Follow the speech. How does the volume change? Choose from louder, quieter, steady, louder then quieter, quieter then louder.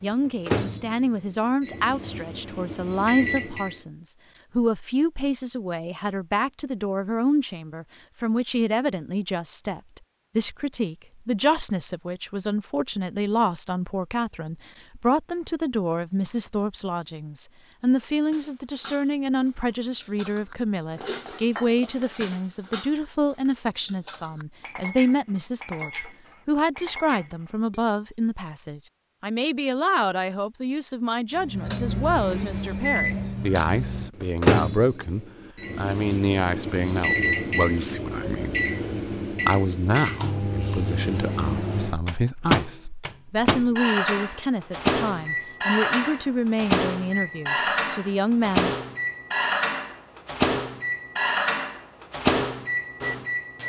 steady.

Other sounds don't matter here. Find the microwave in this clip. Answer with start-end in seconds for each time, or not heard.
0.0-3.8, 31.4-53.6.